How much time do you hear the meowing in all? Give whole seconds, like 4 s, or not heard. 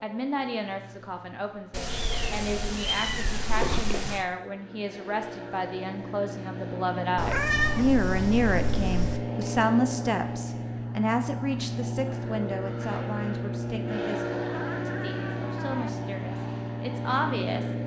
6 s.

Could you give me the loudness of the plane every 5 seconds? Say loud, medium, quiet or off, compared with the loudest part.
quiet, loud, loud, loud.